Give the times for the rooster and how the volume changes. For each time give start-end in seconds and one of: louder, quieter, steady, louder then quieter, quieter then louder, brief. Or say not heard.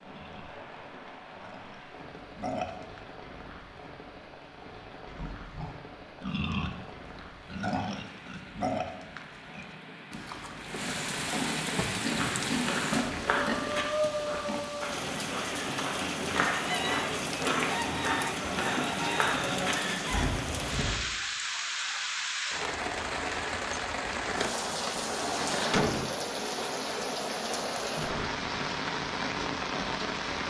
16.4-20.4 steady.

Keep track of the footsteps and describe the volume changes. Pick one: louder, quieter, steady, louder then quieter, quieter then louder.
quieter then louder.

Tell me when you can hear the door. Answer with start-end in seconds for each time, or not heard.
24.2-26.1.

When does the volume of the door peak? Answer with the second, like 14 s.
26 s.